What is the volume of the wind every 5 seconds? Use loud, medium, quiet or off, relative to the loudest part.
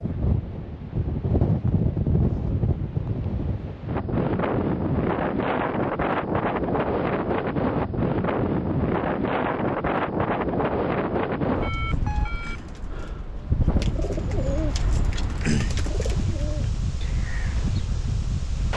loud, loud, loud, medium.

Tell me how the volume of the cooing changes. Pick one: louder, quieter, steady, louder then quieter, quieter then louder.
louder then quieter.